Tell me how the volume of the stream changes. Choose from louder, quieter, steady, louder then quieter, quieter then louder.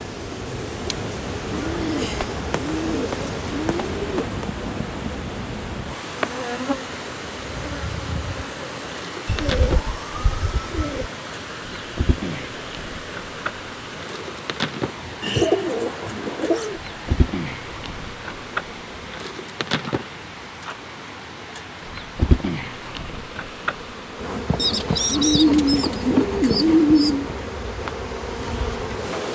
quieter.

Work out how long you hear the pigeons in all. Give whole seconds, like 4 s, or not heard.
9 s.